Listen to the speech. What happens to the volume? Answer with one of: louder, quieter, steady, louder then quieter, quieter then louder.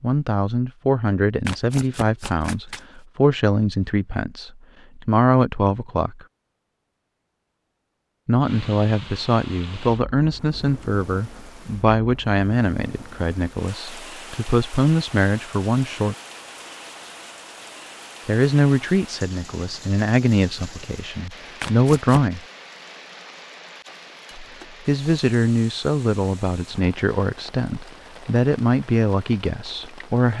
steady.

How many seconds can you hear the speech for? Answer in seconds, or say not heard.
24 s.